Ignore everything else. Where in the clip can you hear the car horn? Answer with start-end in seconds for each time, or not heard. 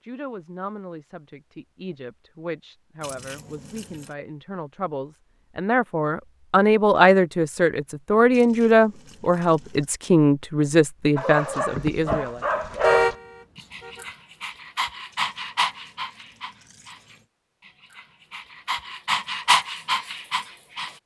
12.7-14.1.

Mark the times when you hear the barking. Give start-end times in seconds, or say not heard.
11.2-20.9.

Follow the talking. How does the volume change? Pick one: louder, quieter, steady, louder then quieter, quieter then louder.
louder.